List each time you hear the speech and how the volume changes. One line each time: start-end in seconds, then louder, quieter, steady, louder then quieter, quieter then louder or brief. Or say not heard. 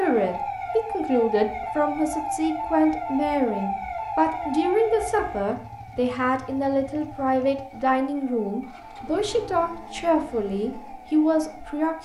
0.0-12.0 steady.